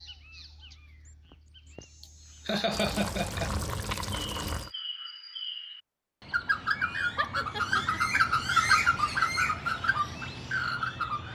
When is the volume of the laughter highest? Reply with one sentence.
The volume of the laughter peaks at 3 seconds.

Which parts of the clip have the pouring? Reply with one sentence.
The pouring can be heard from 2.7 to 4.7 s.